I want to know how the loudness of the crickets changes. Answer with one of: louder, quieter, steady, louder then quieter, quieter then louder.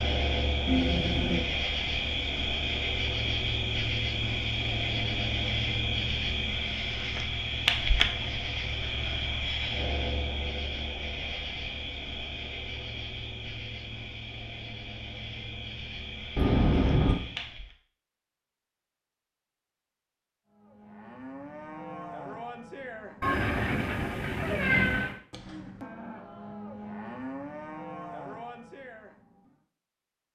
quieter.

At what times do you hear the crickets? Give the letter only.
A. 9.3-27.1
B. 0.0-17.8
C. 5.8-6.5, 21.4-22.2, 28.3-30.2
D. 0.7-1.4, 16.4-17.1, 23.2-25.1
B.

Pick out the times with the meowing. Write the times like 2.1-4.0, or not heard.
0.7-1.4, 16.4-17.1, 23.2-25.1.